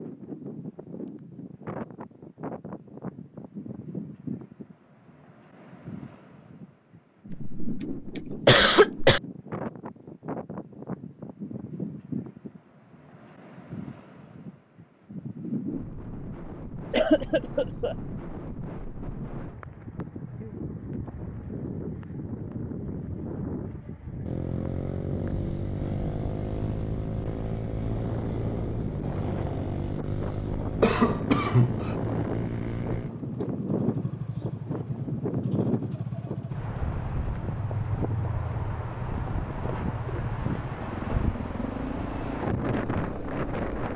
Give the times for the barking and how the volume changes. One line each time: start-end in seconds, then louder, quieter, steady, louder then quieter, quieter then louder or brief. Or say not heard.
not heard.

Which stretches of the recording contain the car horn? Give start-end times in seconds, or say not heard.
not heard.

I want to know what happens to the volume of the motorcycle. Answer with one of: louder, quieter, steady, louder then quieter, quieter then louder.
steady.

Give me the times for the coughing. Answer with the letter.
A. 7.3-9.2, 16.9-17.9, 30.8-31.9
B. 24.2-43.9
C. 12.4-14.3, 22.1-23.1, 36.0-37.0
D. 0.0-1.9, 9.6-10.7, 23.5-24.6
A.